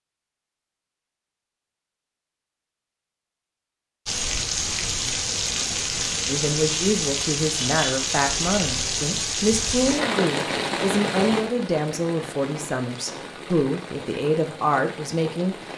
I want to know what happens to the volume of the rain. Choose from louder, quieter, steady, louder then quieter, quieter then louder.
quieter.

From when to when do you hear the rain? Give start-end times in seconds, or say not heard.
4.0-15.7.